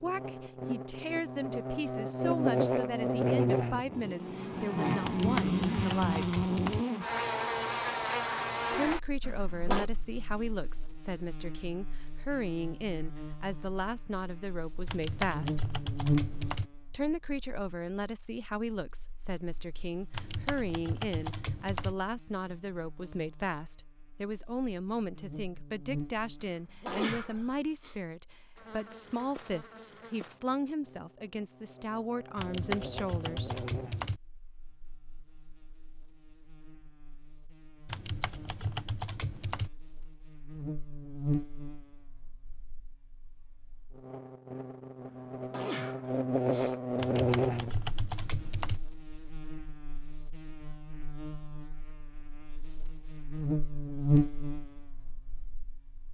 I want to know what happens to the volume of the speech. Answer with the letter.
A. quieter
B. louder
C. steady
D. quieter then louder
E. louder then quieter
C.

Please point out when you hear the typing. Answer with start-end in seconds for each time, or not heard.
5.0-6.8, 14.8-16.7, 20.1-21.9, 32.4-34.2, 37.9-39.7, 47.0-48.8.